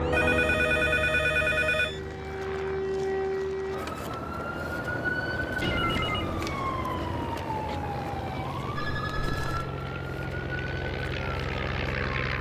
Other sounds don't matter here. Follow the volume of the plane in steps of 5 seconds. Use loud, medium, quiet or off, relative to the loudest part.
loud, medium, loud.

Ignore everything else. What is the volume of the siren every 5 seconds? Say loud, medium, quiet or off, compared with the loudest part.
loud, loud, medium.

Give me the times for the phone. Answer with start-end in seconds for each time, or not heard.
0.1-1.9, 5.6-6.7, 8.8-9.7.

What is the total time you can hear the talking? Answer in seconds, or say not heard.
not heard.